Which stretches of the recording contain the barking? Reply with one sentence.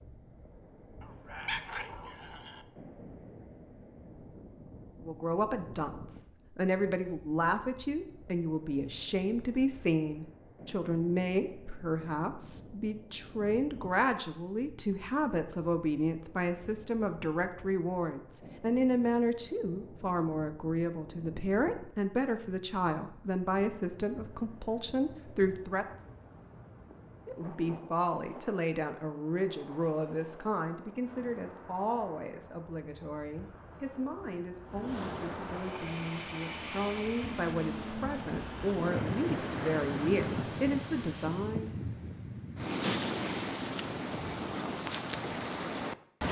You can hear the barking from 1.0 to 2.6 s.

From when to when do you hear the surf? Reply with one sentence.
The surf can be heard from 0.0 to 46.2 s.